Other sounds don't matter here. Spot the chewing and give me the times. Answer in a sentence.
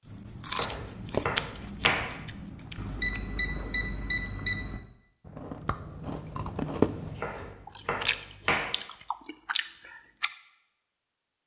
You can hear the chewing from 0.1 to 10.3 s.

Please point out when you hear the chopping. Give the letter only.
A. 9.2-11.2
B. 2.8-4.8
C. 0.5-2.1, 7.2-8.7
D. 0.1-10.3
C.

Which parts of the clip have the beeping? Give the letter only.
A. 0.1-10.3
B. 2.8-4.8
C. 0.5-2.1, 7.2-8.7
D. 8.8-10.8
B.